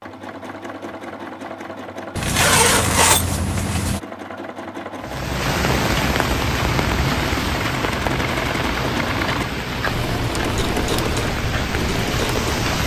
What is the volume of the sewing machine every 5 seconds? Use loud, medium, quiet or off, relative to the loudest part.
medium, loud, loud.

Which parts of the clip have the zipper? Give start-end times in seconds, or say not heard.
2.1-4.0.